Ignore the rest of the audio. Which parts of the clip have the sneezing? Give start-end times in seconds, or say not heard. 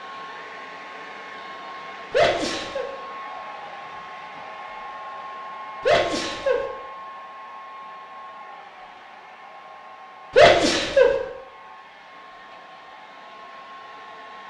2.1-2.9, 5.8-6.7, 10.3-11.2.